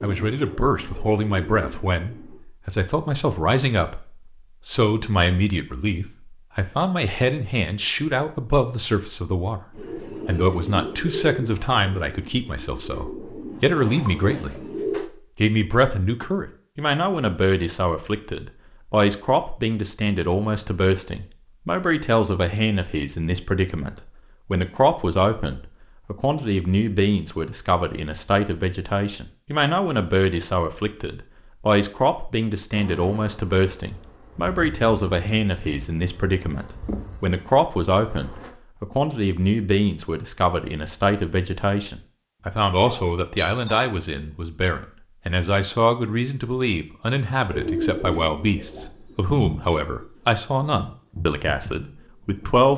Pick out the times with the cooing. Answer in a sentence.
You can hear the cooing from 0.0 to 2.4 s, from 9.8 to 15.1 s and from 47.5 to 52.6 s.